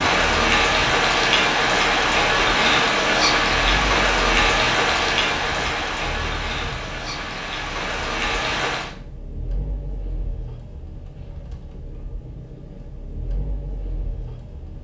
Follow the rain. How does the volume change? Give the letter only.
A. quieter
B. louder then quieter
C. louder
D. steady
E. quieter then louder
A.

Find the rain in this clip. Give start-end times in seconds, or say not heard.
0.0-8.9.